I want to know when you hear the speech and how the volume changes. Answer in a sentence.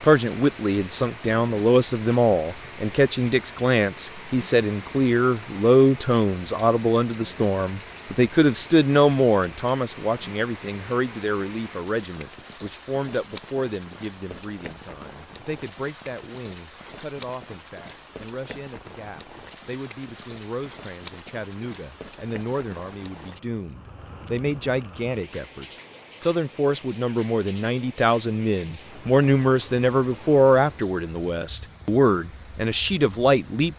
You can hear the speech from 0.0 to 33.7 s, getting quieter then louder.